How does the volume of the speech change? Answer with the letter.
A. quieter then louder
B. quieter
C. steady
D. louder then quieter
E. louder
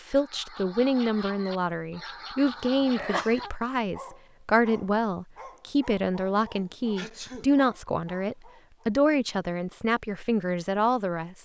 C.